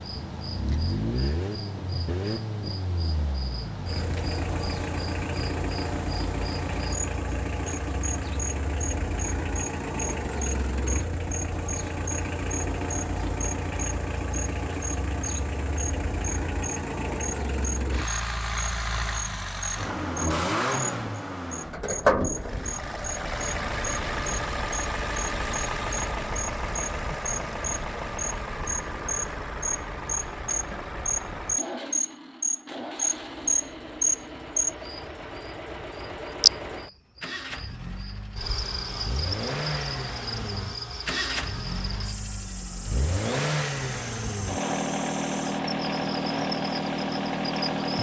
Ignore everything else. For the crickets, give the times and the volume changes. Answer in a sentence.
You can hear the crickets from 0.0 to 47.9 s, getting louder then quieter.